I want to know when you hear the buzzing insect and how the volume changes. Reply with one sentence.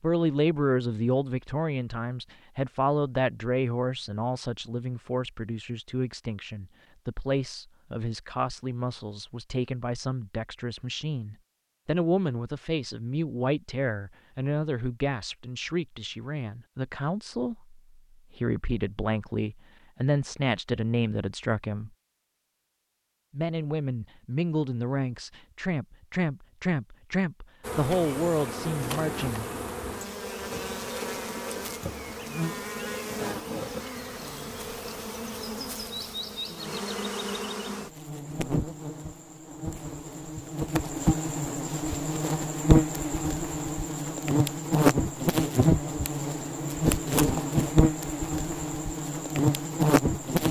You can hear the buzzing insect from 27.6 to 50.4 s, getting louder.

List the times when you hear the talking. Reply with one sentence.
The talking can be heard from 0.0 to 21.9 s and from 23.3 to 29.4 s.